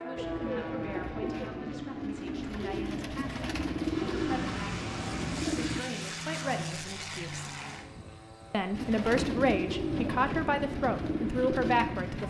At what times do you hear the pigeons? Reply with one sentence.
The pigeons can be heard from 0.1 to 5.8 s and from 8.8 to 12.2 s.